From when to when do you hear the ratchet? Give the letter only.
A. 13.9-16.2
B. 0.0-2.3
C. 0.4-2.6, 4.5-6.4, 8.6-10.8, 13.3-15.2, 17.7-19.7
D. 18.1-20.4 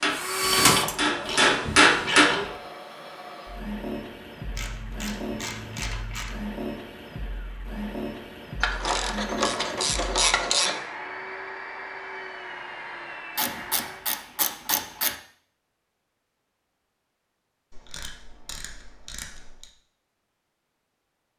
C.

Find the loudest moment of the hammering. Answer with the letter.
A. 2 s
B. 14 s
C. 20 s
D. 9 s
A.